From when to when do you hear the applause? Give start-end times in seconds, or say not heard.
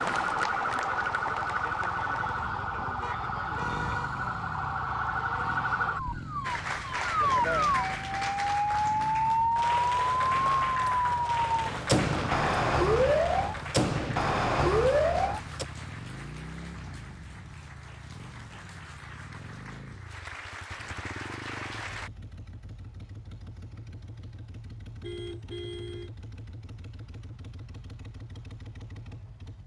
0.0-2.5, 6.4-22.1.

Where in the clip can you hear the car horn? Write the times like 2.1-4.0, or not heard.
3.0-4.1, 25.0-26.1.